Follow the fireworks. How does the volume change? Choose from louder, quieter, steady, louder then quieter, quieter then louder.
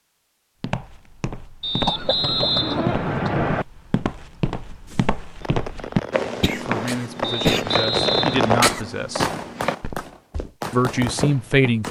louder then quieter.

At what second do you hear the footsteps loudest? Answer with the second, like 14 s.
6 s.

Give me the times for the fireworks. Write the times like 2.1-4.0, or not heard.
4.8-11.8.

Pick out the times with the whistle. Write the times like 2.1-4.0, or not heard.
1.6-3.6, 7.2-8.6.